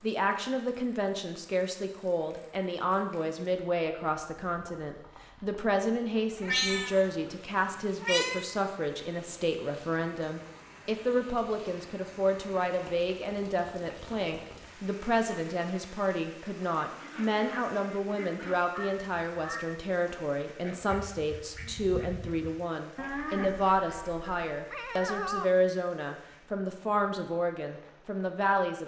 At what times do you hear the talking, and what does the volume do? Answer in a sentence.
You can hear the talking from 0.0 to 28.8 s, at a steady volume.